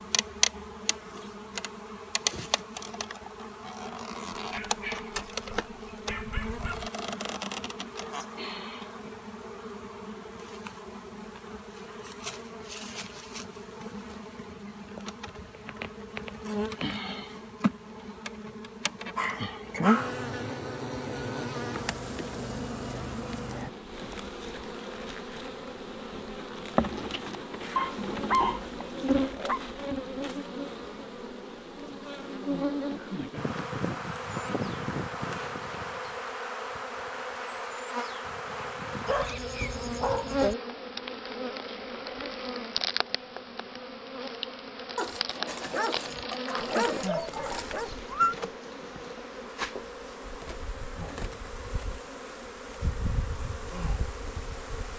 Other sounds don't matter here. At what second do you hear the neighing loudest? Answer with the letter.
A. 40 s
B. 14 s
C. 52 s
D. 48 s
D.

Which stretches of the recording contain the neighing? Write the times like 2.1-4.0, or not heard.
46.5-48.4.